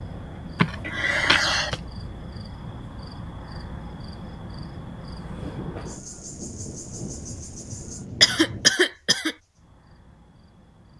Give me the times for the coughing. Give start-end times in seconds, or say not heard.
0.6-1.8, 8.2-9.3.